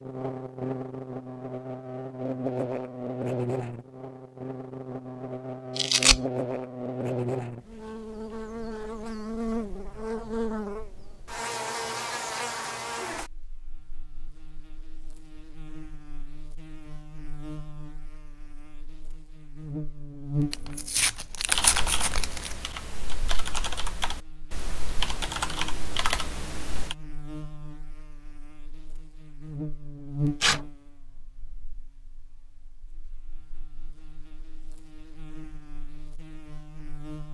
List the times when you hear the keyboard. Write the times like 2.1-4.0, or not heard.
21.4-26.9.